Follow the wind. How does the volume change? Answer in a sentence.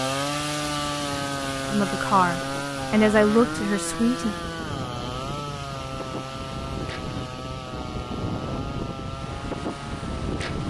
The loudness of the wind goes up.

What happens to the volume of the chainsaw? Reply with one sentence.
The volume of the chainsaw goes down.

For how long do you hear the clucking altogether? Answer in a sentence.
The clucking can't be heard in this clip.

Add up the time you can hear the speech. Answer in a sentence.
You can hear the speech for 3 seconds altogether.